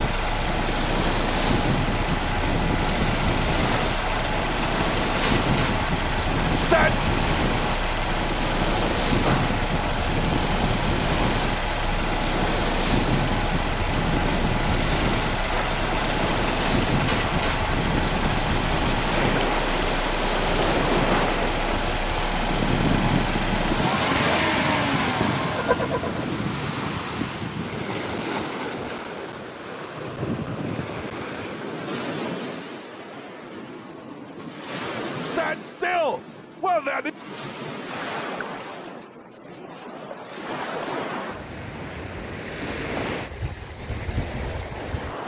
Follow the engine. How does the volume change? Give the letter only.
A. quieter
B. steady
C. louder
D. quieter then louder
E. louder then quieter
B.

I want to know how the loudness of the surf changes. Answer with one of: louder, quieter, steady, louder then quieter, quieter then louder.
quieter.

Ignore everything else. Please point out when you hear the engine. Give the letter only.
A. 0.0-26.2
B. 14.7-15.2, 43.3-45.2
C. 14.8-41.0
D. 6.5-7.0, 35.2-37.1
A.